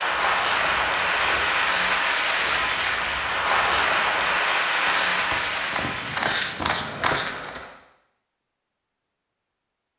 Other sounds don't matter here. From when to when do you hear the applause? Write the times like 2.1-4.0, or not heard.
0.0-7.8.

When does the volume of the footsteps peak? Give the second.
6 s.